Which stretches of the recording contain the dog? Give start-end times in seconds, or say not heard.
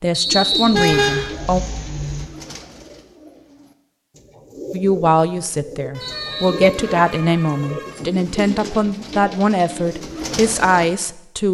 not heard.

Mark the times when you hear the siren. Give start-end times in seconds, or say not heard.
not heard.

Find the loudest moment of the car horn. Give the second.
1 s.